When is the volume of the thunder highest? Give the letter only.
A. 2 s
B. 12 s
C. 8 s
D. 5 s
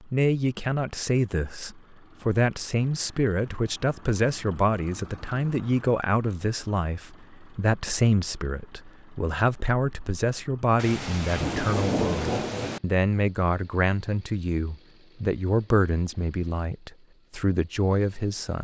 B.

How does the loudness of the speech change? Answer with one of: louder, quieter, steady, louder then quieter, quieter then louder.
steady.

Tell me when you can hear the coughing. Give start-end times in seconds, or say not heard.
not heard.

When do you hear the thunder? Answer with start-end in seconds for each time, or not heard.
10.8-12.8.